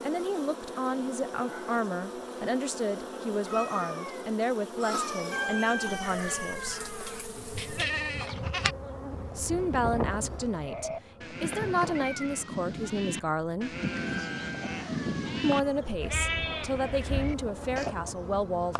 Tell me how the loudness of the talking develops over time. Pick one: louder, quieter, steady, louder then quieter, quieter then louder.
steady.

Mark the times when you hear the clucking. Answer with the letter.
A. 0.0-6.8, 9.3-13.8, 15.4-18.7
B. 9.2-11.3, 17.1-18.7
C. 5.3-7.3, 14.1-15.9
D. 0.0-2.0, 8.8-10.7
C.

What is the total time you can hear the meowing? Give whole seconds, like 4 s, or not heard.
4 s.